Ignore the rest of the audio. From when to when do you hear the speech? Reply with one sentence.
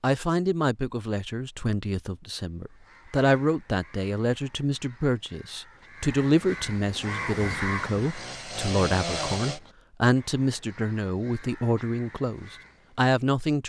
The speech can be heard from 0.0 to 13.6 s.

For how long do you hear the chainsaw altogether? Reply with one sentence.
You can hear the chainsaw for 3 seconds altogether.